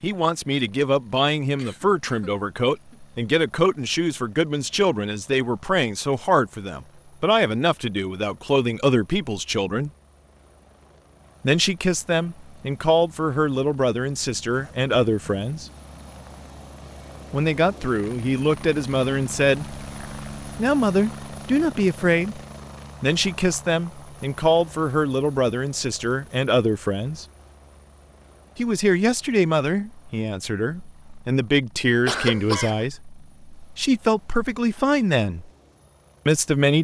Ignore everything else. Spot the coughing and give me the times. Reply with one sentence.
The coughing can be heard from 1.6 to 3.0 s, from 14.5 to 15.4 s and from 32.0 to 32.9 s.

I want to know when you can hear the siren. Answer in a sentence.
The siren can't be heard in this clip.